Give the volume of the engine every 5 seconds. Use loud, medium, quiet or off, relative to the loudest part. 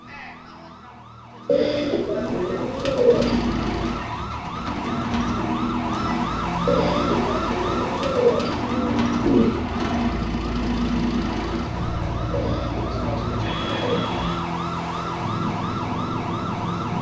loud, loud, loud, off.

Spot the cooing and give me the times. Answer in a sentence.
You can hear the cooing from 1.4 to 3.5 s, from 6.7 to 9.6 s and from 12.3 to 14.1 s.